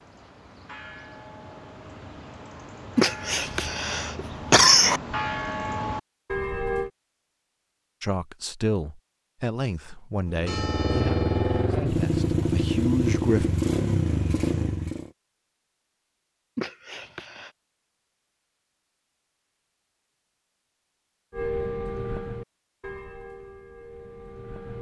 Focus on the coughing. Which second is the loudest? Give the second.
5 s.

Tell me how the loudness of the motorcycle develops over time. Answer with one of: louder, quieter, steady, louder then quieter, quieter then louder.
steady.